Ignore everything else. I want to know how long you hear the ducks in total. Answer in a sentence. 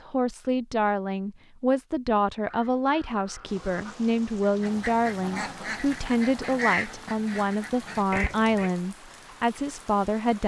The ducks can be heard for 6 seconds in total.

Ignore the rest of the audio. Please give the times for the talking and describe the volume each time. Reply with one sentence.
You can hear the talking from 0.0 to 10.4 s, at a steady volume.